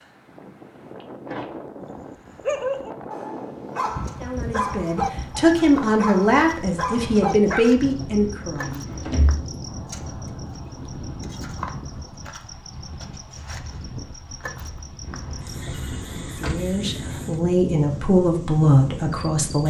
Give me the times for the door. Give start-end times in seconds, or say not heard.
1.0-1.6, 8.6-9.4, 15.1-16.6.